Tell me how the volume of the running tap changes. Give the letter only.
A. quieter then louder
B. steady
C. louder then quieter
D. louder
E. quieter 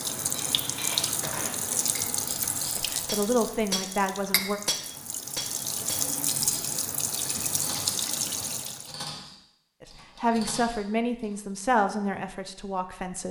A.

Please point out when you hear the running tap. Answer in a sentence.
The running tap can be heard from 0.0 to 8.9 s.